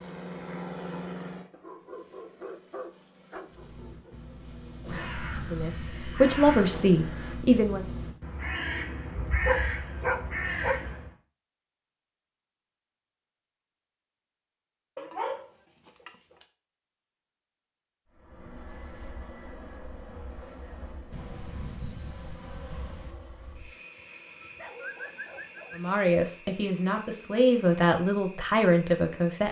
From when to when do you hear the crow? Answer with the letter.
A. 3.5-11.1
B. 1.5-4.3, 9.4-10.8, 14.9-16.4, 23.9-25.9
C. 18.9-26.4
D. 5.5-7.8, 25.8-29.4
A.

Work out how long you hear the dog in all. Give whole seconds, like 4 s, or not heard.
8 s.